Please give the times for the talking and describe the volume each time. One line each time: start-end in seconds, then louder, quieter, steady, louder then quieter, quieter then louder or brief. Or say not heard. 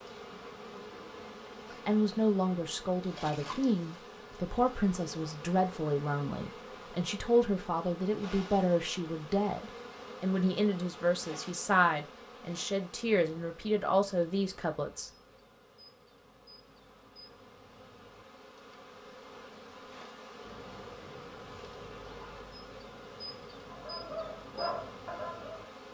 1.7-15.1 steady.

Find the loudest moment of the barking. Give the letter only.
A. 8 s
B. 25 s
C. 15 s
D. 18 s
B.